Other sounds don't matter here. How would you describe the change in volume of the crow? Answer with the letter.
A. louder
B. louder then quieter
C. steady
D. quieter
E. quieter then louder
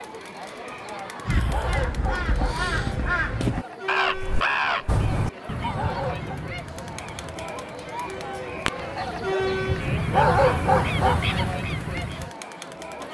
E.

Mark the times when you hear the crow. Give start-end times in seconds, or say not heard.
1.2-12.3.